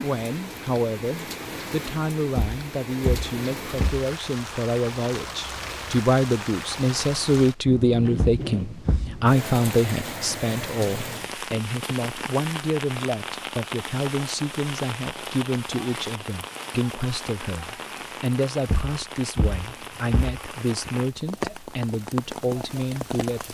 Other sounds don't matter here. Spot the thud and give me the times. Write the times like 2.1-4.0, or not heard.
2.4-4.0, 8.2-9.2, 18.6-20.9.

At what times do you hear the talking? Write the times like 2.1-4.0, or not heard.
0.0-23.5.